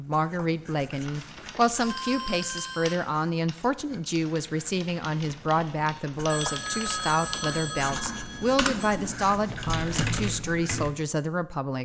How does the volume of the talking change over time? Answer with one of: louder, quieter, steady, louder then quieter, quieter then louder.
steady.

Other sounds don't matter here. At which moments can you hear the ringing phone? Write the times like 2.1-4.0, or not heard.
1.1-3.0, 6.2-8.9.